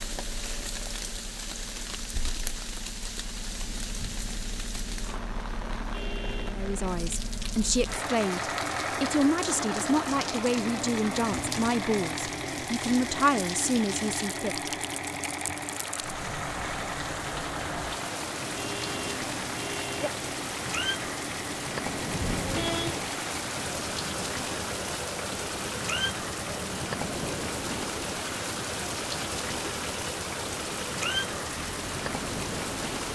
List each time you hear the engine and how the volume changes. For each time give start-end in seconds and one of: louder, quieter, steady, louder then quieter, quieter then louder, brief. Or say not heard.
0.0-33.1 louder then quieter.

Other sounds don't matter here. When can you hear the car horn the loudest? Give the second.
23 s.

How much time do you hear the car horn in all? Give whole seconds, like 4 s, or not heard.
3 s.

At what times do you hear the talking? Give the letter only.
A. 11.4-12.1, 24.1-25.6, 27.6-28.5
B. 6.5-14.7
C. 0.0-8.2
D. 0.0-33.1
B.